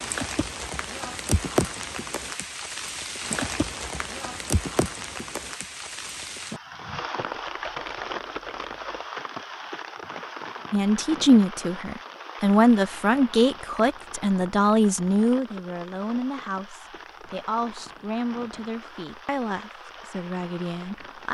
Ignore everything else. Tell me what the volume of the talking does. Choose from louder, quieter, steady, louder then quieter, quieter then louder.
quieter.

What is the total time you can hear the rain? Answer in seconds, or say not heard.
21 s.